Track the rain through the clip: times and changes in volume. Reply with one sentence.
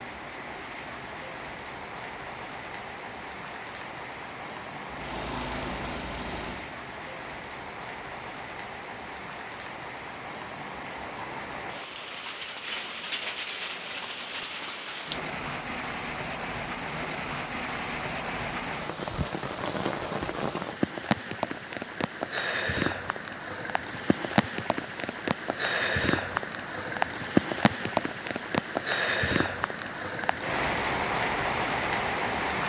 The rain can be heard from 0.0 to 32.6 s, getting louder.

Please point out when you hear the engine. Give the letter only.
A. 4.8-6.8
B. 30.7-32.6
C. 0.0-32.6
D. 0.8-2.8
A.